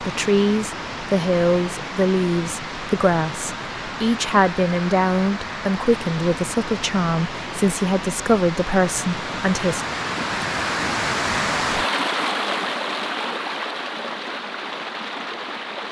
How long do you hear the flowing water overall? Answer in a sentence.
The flowing water can be heard for 16 seconds in total.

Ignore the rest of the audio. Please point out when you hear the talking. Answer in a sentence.
You can hear the talking from 0.0 to 9.8 s.